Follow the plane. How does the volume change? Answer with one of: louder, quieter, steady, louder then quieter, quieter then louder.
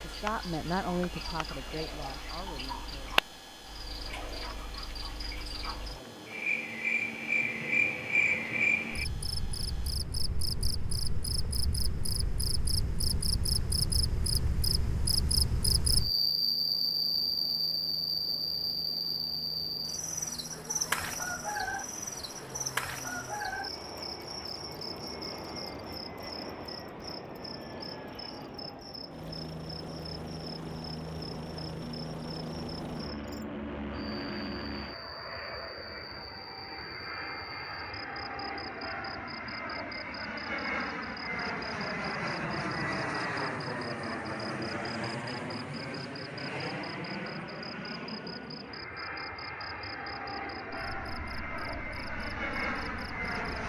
louder.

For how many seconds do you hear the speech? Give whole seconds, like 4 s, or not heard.
3 s.